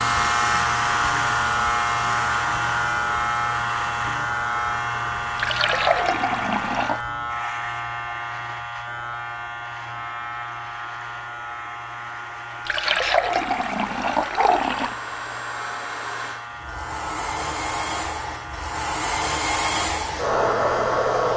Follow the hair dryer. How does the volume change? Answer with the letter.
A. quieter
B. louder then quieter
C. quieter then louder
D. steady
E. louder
C.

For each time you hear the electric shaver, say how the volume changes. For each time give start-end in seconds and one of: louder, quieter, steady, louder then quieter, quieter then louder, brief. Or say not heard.
0.0-21.3 quieter.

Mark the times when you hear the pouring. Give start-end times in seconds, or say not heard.
5.3-7.0, 12.7-14.9.